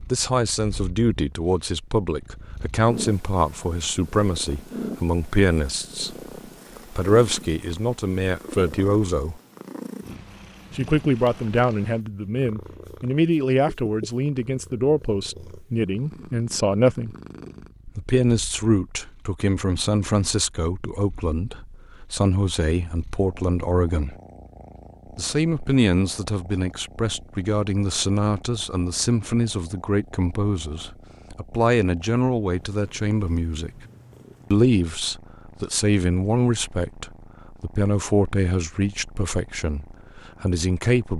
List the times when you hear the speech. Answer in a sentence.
The speech can be heard from 0.1 to 6.2 s, from 6.9 to 9.4 s, from 10.8 to 17.1 s, from 17.9 to 24.1 s, from 25.1 to 33.9 s and from 34.5 to 41.1 s.